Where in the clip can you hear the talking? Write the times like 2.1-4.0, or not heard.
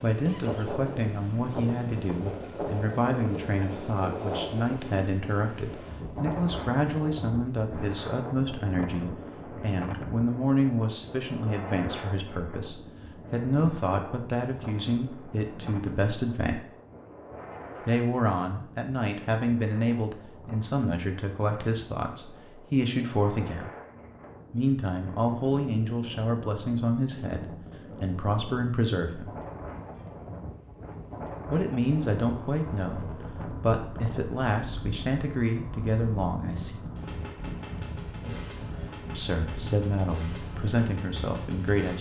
0.0-16.6, 17.9-23.7, 24.5-29.3, 31.4-36.8, 39.1-41.9.